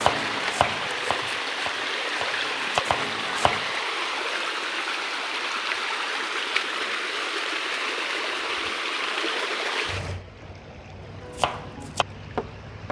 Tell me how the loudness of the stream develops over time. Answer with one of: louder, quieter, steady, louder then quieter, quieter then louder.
quieter.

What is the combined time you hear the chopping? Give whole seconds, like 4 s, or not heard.
5 s.